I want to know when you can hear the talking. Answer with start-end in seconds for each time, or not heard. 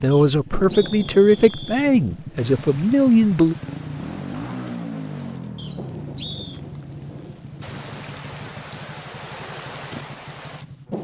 0.0-3.5.